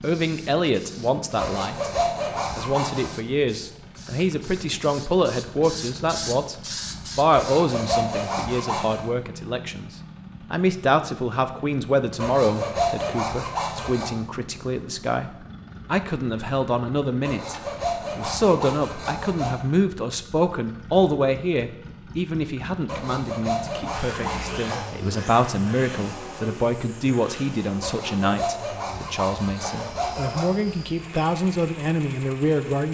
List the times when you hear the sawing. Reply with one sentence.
The sawing can be heard from 1.4 to 3.2 s, from 7.3 to 9.1 s, from 12.2 to 14.1 s, from 17.2 to 19.6 s, from 22.9 to 24.9 s and from 27.8 to 30.5 s.